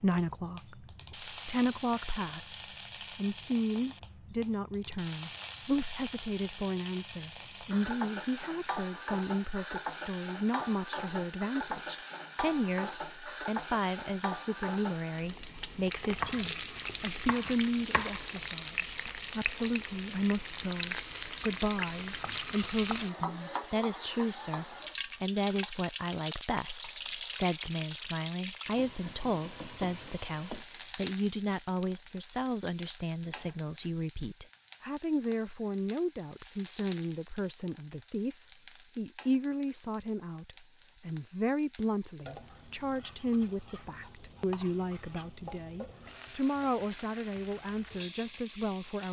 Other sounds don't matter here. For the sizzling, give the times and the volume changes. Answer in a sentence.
You can hear the sizzling from 0.0 to 49.0 s, getting quieter.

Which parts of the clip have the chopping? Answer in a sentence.
You can hear the chopping from 16.1 to 18.3 s.